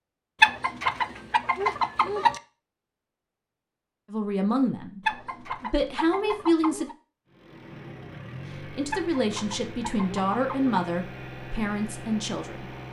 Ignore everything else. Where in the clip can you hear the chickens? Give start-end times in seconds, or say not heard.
0.4-2.4, 5.0-7.0, 8.9-10.8.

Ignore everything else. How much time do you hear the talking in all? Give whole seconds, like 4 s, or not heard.
7 s.